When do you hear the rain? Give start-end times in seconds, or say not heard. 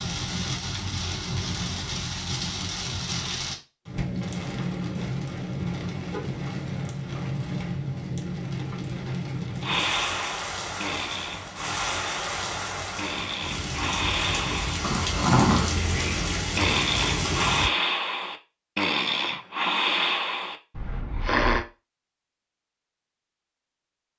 0.0-17.7.